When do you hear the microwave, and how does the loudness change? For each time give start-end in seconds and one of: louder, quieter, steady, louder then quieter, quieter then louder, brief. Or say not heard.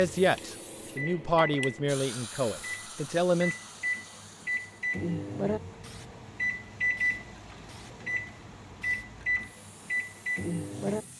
0.0-11.1 louder.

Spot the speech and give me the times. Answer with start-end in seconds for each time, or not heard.
0.0-3.5.